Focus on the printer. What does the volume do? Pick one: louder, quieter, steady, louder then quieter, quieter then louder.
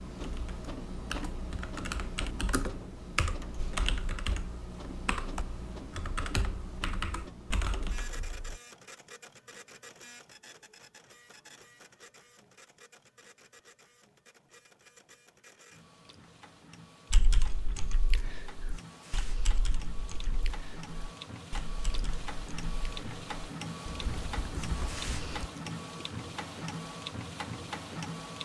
quieter then louder.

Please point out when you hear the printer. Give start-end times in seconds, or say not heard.
0.0-28.3.